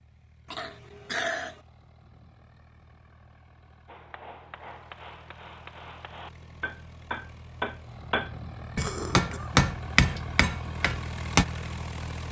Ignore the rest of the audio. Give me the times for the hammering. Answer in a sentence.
You can hear the hammering from 3.9 to 11.4 s.